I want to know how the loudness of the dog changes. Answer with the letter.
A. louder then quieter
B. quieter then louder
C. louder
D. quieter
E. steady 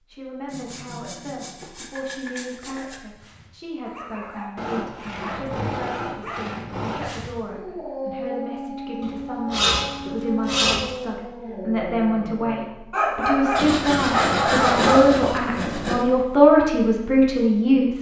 C.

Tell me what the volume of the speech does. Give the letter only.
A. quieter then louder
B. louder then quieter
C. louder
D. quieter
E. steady
C.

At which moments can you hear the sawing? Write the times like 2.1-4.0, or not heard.
0.5-3.0, 4.5-7.0, 9.0-10.8, 13.6-16.1.